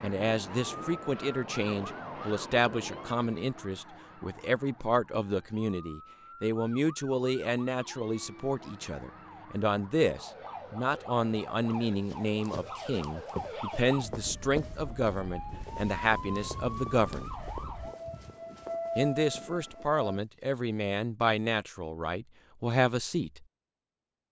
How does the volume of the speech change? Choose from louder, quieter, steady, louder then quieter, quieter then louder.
steady.